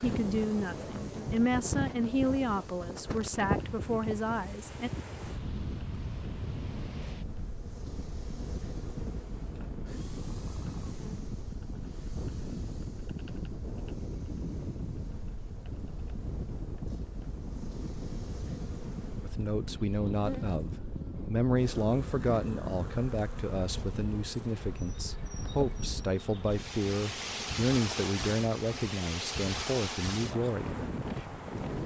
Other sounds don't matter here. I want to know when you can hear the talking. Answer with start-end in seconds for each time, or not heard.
0.0-4.9, 19.2-30.8.